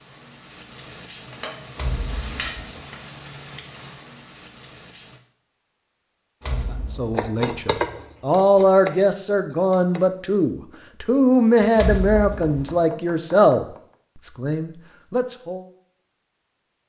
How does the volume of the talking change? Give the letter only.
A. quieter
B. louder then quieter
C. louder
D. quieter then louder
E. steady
A.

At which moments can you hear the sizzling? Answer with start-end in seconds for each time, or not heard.
0.0-5.2.